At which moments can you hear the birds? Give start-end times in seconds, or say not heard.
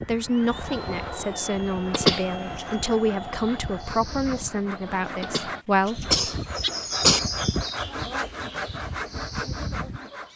3.2-10.3.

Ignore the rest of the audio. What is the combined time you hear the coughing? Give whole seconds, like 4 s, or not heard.
3 s.